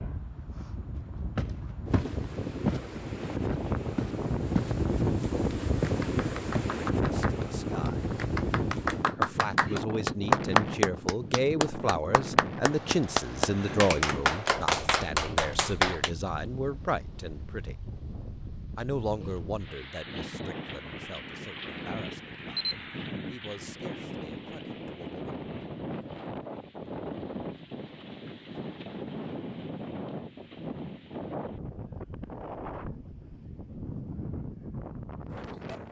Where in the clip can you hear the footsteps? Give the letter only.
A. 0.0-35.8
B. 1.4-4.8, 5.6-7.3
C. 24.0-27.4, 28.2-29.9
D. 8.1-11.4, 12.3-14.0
B.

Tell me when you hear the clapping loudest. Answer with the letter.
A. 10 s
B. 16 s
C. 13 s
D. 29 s
A.